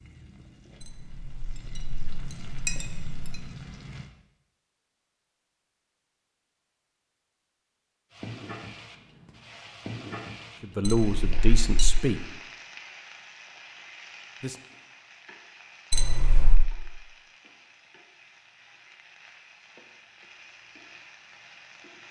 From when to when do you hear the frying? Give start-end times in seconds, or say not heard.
0.0-4.1, 8.1-22.0.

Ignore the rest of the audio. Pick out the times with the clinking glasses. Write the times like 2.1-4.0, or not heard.
0.8-3.4, 10.8-11.9, 15.9-16.6.